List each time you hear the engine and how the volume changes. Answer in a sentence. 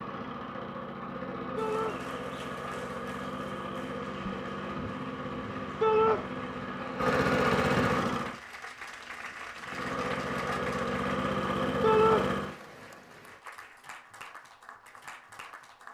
You can hear the engine from 0.0 to 8.4 s, getting louder; and briefly from 9.7 to 12.6 s.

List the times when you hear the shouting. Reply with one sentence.
You can hear the shouting from 1.6 to 2.0 s, from 5.8 to 6.2 s and from 11.8 to 12.2 s.